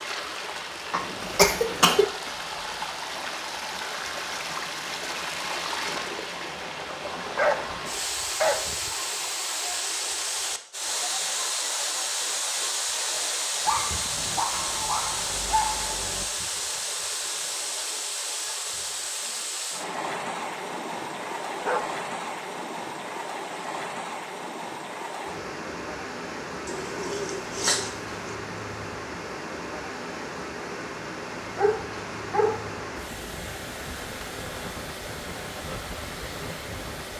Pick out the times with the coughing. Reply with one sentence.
The coughing can be heard from 0.9 to 2.0 s.